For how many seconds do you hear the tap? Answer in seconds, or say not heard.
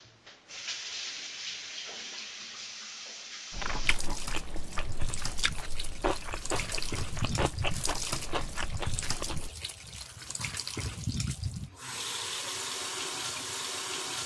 14 s.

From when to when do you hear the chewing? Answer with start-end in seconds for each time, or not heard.
3.5-9.5.